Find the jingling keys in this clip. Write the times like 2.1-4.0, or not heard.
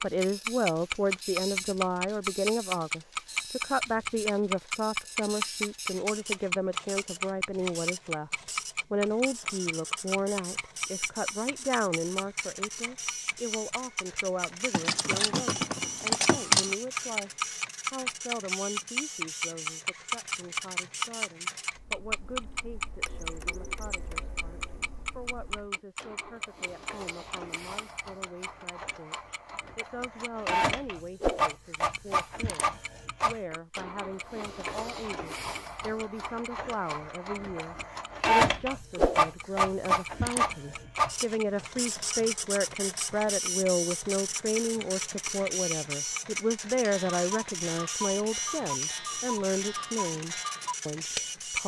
14.7-16.8.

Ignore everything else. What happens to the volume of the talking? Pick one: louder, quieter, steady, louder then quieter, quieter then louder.
quieter then louder.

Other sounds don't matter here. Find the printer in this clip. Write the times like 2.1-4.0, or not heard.
0.0-51.6.